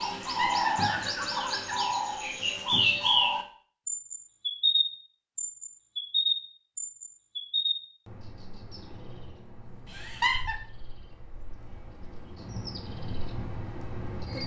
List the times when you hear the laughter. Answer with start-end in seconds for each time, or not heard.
0.2-1.8, 9.9-10.6.